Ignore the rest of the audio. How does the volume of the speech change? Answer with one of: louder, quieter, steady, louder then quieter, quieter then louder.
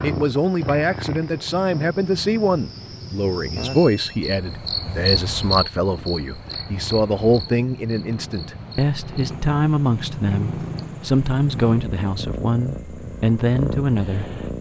steady.